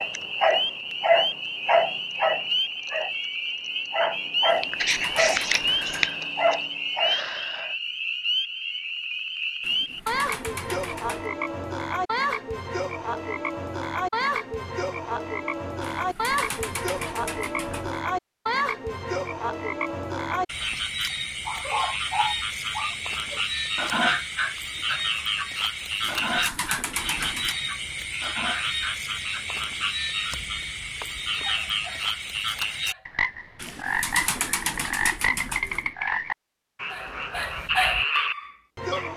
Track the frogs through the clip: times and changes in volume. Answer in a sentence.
The frogs can be heard from 0.0 to 39.1 s, at a steady volume.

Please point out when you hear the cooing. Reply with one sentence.
The cooing can be heard from 4.5 to 6.1 s, from 9.6 to 11.3 s, from 15.8 to 18.0 s, from 26.0 to 27.6 s and from 33.5 to 35.9 s.